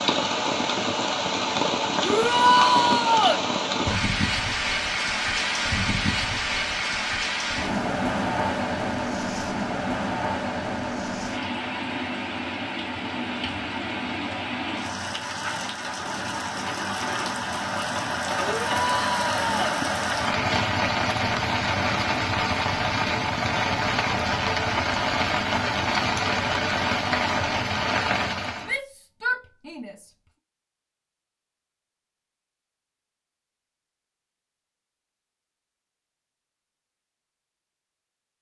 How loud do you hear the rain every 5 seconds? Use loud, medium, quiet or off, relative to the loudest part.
loud, loud, medium, loud, loud, loud, off, off.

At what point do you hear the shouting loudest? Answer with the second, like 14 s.
3 s.